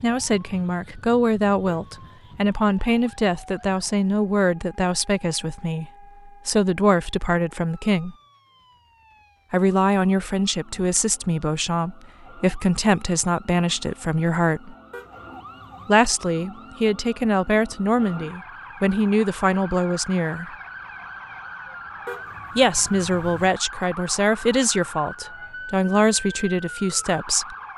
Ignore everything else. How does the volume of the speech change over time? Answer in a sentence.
The volume of the speech stays about the same.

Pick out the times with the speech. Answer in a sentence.
The speech can be heard from 0.0 to 8.2 s, from 9.5 to 14.8 s, from 15.8 to 20.5 s and from 22.6 to 27.6 s.